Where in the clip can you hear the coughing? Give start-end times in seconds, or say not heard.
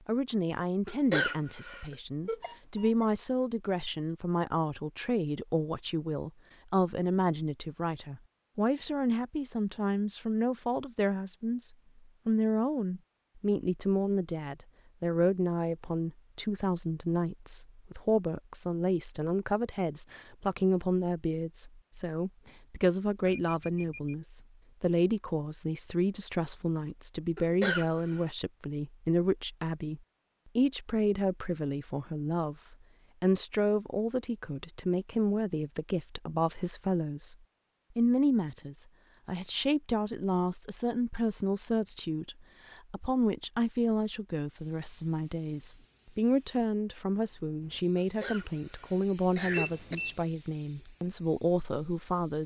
0.8-1.9, 27.4-28.2, 48.0-50.0.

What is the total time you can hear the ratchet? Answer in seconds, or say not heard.
not heard.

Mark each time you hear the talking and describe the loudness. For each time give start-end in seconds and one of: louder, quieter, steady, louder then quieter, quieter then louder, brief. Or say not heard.
0.1-37.4 steady
38.0-52.4 steady.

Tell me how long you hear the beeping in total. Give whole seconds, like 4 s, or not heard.
2 s.